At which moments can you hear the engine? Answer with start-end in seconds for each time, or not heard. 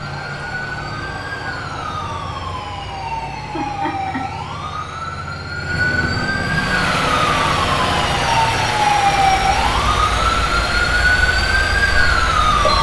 6.3-12.7.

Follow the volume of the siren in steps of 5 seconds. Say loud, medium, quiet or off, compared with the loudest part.
medium, loud, loud.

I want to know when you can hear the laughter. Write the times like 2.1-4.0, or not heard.
3.4-4.2.